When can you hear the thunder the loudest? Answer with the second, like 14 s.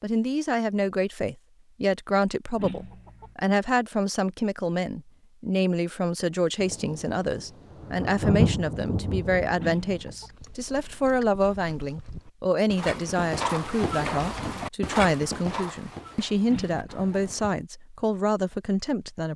8 s.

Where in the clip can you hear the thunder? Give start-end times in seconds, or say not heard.
6.6-10.2.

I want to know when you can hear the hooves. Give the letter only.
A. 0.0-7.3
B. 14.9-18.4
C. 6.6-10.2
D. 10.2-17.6
D.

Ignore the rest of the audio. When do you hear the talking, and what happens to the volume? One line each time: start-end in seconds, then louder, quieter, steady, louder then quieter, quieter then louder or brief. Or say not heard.
0.0-19.3 steady.